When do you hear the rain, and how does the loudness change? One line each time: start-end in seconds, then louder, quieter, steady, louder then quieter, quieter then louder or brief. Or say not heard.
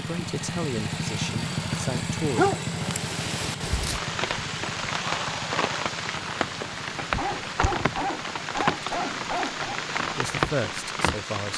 2.7-11.5 steady.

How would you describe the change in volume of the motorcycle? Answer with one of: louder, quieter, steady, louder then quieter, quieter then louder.
quieter.